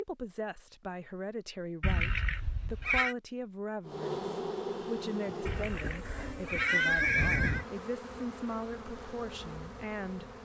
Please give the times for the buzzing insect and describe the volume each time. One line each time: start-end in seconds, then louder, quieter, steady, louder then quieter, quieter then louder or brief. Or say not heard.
3.9-10.4 quieter.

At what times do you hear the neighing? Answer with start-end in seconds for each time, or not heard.
1.8-3.1, 5.5-7.7.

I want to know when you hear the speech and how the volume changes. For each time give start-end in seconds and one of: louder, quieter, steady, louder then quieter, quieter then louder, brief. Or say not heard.
0.0-10.3 steady.